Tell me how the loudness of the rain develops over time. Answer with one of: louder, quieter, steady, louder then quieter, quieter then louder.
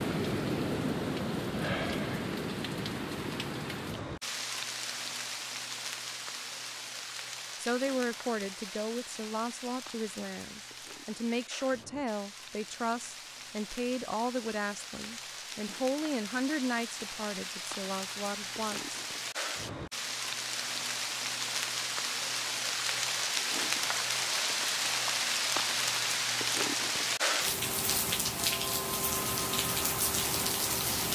quieter then louder.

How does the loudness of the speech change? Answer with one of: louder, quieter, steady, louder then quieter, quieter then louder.
steady.